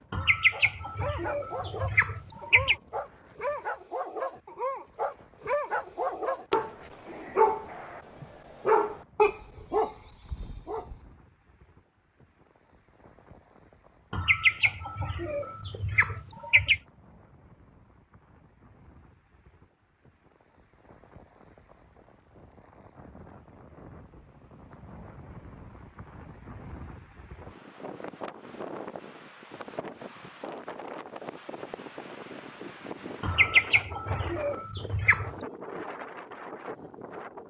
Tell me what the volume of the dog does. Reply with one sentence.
The volume of the dog goes up.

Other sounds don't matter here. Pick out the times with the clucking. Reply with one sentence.
The clucking can be heard from 0.1 to 2.8 s, from 14.1 to 16.8 s and from 33.2 to 35.4 s.